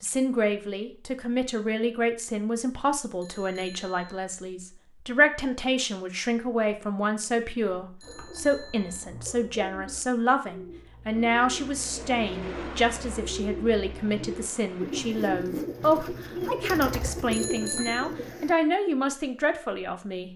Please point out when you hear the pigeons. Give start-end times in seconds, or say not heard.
7.6-18.6.